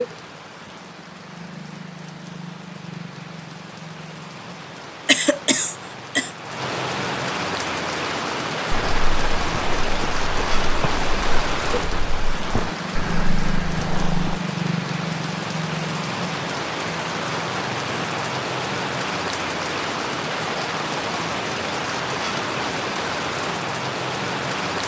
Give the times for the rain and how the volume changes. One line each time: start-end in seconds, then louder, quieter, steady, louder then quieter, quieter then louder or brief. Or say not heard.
0.0-24.8 louder.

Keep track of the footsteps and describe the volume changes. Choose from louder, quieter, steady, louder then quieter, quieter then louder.
steady.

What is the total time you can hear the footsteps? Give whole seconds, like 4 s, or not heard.
6 s.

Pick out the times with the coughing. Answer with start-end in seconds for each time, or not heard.
5.0-6.3.